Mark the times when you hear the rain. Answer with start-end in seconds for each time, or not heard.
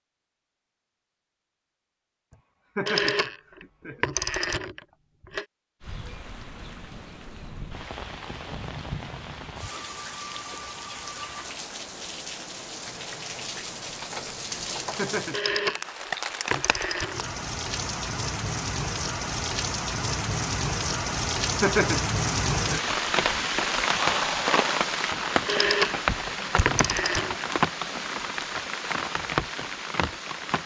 5.8-30.6.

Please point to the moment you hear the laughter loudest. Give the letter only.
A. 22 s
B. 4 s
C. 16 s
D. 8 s
A.